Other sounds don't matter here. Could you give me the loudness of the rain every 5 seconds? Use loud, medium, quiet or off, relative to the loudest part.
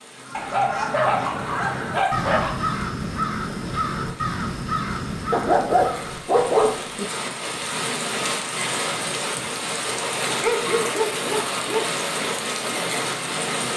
quiet, loud, loud.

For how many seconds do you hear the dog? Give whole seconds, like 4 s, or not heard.
6 s.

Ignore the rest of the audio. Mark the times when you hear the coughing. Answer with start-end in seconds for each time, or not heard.
not heard.